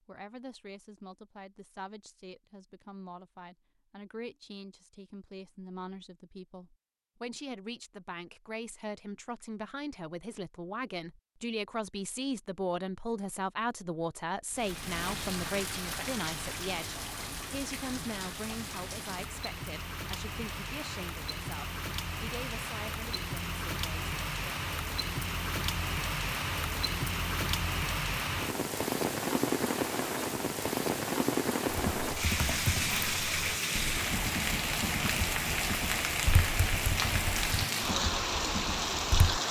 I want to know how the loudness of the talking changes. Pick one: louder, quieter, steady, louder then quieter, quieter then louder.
louder then quieter.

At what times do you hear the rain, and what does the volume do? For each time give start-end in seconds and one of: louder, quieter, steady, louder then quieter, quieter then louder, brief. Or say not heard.
14.5-39.4 louder.